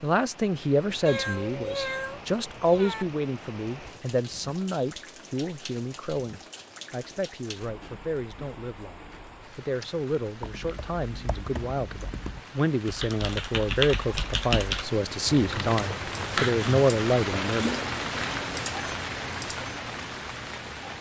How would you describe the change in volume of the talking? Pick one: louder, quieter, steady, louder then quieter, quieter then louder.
quieter then louder.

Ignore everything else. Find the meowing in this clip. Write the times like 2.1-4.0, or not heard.
1.1-3.0.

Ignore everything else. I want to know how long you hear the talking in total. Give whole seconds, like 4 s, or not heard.
18 s.